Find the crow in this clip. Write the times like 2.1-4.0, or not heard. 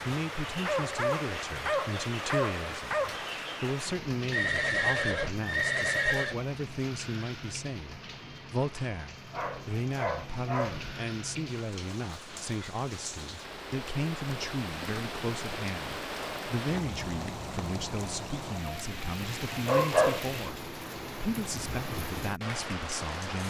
not heard.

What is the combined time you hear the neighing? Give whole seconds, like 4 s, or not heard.
2 s.